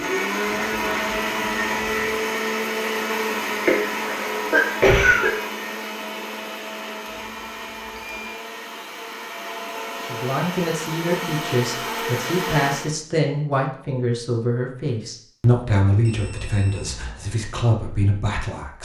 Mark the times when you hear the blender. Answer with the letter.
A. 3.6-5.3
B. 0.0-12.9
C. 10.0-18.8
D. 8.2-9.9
B.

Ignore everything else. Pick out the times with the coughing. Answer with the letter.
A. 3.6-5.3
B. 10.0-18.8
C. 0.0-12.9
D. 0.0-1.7
A.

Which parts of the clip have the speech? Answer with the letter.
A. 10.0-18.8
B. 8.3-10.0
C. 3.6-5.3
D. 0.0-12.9
A.